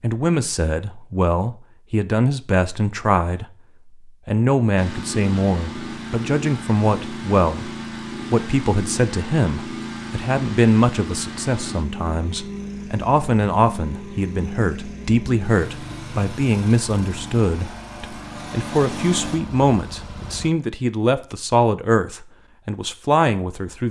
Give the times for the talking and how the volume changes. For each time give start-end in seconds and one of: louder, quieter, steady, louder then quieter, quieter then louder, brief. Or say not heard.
0.0-23.8 steady.